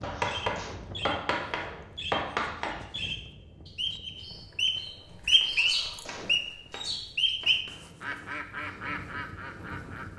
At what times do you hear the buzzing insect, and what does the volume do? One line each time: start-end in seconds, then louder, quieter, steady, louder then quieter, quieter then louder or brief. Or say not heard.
not heard.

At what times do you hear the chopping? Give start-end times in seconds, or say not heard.
0.0-2.8, 5.4-8.2.